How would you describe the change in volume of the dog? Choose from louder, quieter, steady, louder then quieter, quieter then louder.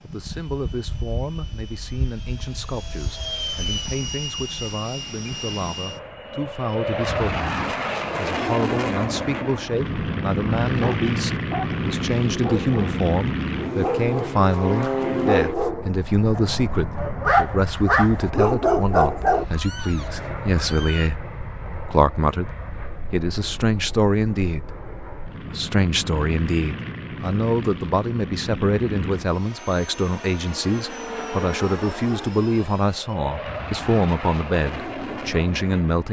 louder.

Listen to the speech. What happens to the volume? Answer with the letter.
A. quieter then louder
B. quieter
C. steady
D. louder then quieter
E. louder
E.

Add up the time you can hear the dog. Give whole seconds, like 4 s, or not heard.
9 s.